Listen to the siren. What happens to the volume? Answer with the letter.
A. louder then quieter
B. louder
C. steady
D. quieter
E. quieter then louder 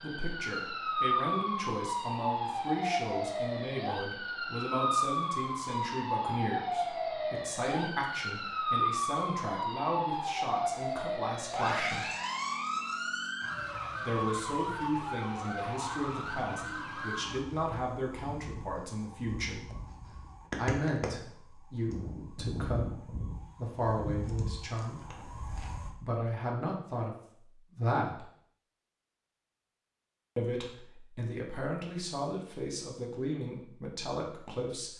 D.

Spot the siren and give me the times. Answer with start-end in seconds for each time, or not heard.
0.0-25.9.